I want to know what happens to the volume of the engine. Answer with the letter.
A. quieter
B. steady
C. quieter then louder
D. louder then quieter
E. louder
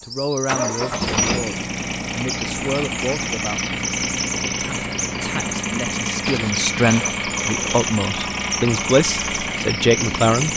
B.